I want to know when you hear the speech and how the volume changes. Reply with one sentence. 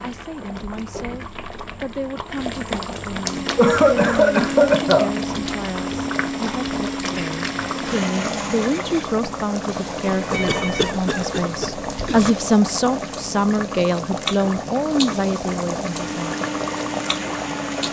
You can hear the speech from 0.0 to 16.4 s, getting louder.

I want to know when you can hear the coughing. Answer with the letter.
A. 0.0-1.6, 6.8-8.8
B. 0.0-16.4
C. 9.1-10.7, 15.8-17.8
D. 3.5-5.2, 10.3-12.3
D.